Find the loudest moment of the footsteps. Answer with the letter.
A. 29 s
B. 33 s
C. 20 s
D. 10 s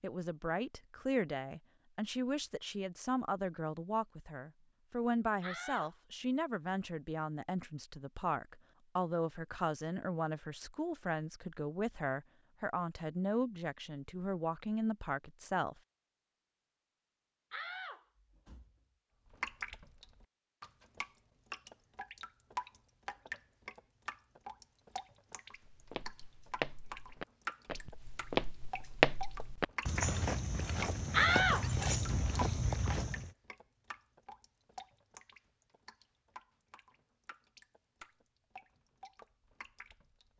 A.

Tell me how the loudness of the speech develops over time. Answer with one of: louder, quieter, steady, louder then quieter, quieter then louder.
steady.